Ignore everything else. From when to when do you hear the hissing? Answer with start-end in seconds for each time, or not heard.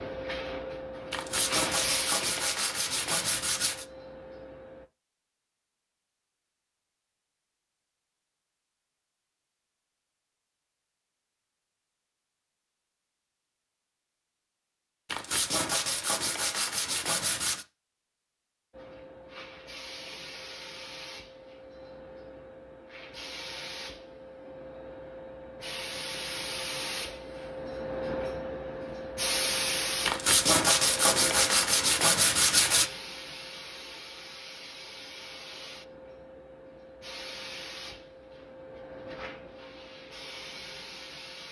0.0-4.8, 18.8-41.4.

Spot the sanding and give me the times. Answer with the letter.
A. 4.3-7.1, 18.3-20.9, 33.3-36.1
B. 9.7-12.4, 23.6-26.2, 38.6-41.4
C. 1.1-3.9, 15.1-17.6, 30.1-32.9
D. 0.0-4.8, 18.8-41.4
C.